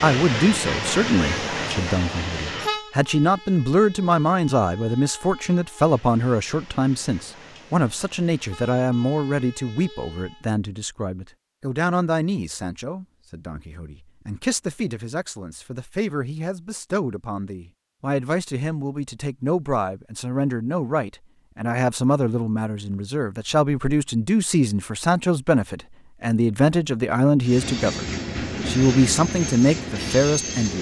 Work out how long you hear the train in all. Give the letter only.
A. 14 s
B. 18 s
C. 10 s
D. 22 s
A.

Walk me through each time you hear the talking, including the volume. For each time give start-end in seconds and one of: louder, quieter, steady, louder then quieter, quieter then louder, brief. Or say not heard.
0.0-30.7 quieter then louder.